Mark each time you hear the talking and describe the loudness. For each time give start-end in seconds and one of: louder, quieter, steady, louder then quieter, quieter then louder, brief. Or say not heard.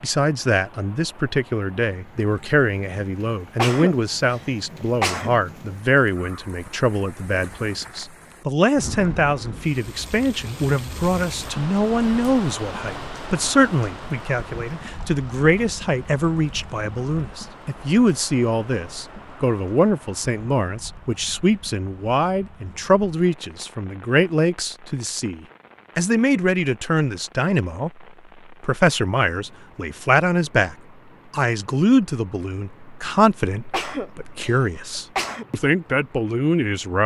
0.0-37.0 steady.